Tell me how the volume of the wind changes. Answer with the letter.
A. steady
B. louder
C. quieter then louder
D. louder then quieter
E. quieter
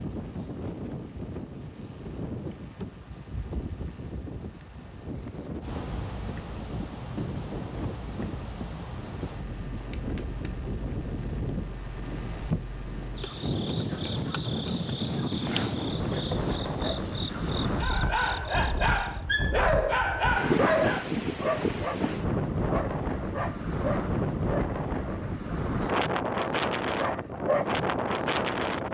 B.